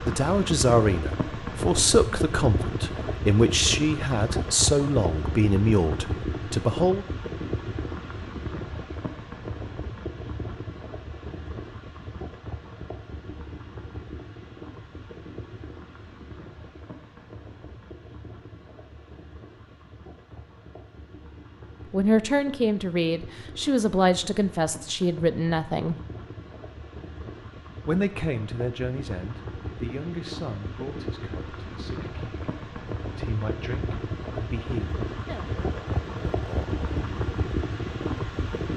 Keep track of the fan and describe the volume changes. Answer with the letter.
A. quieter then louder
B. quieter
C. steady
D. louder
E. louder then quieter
A.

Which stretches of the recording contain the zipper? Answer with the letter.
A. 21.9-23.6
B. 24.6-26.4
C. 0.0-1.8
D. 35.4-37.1
D.